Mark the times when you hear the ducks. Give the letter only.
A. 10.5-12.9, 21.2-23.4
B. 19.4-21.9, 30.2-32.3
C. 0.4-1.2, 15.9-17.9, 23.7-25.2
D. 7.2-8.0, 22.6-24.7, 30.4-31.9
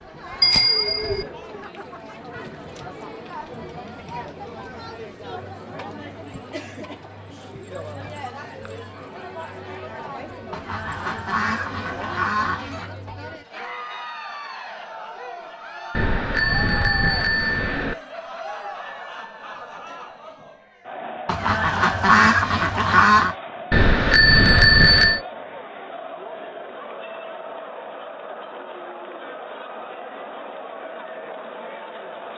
A.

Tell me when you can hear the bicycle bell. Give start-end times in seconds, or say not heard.
0.4-1.2, 15.9-17.9, 23.7-25.2.